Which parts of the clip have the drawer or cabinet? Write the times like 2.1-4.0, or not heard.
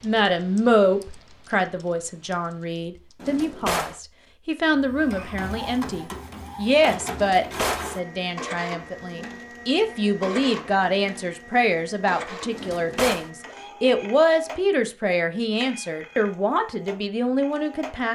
3.2-4.0, 7.1-7.9, 12.5-13.3.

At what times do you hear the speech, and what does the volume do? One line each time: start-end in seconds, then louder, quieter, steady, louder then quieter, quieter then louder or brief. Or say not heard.
0.0-18.1 steady.